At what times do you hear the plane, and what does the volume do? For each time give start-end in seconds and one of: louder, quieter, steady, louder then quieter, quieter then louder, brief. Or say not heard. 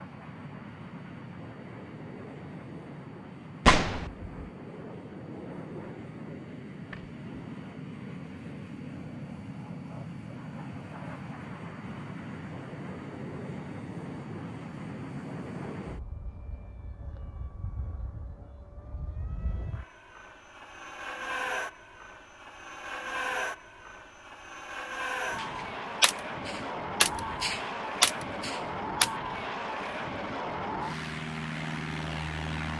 0.0-32.7 louder.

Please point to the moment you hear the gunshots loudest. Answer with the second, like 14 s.
4 s.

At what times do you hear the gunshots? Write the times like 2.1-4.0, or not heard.
3.6-4.1, 25.4-29.1.